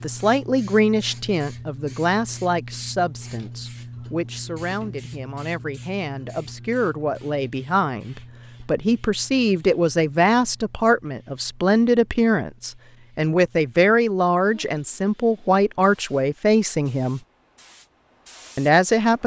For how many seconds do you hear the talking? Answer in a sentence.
You can hear the talking for 18 seconds altogether.